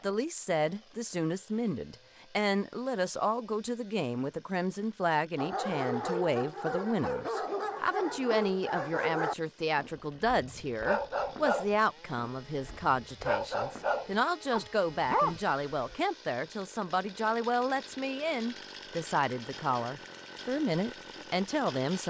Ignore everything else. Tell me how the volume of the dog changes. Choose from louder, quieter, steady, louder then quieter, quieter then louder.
steady.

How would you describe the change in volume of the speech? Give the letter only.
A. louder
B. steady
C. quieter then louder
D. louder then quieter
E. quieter
B.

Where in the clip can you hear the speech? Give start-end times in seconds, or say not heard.
0.0-22.0.